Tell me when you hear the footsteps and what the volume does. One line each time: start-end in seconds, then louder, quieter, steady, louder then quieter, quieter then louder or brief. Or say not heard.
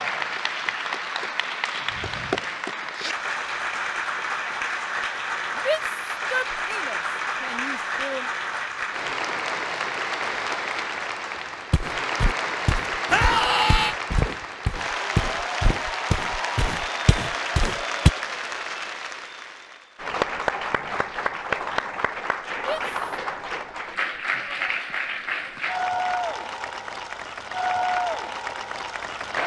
11.7-18.1 steady.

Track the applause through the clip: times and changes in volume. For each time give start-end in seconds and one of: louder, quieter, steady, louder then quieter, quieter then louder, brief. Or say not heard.
0.0-29.4 steady.